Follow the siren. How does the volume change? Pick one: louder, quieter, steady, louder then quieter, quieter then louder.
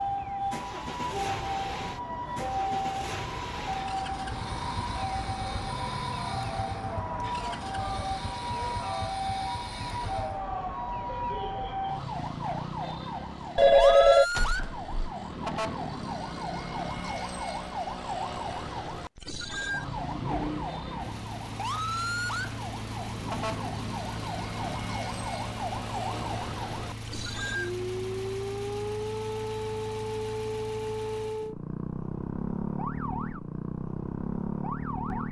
steady.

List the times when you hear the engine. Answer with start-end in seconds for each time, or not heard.
0.0-10.5, 19.6-31.5.